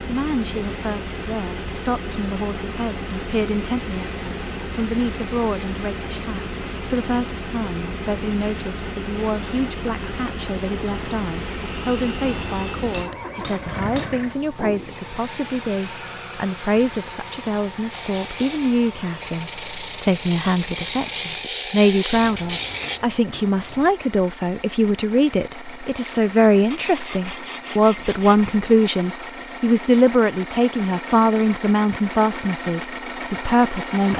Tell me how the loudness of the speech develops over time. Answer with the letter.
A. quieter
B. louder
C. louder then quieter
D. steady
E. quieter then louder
B.